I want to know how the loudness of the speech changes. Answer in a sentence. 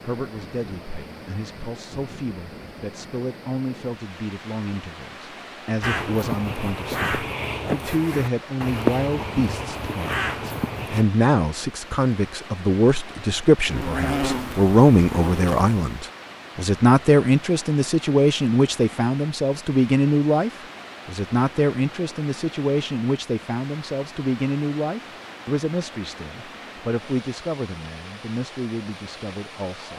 The loudness of the speech goes up, then down.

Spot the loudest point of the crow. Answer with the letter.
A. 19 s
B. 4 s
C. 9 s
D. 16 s
C.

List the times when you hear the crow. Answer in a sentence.
You can hear the crow from 5.8 to 11.1 s.